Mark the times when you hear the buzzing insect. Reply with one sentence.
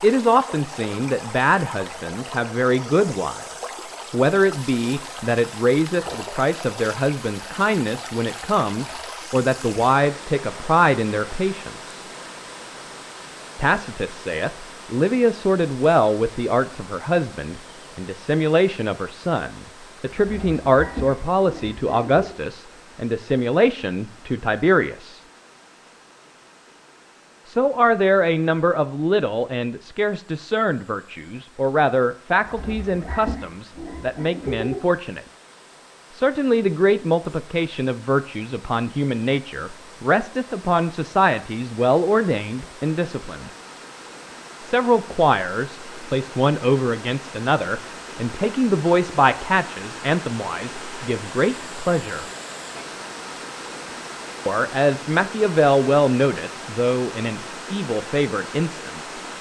You can't hear the buzzing insect here.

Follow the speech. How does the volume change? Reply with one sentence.
The loudness of the speech stays about the same.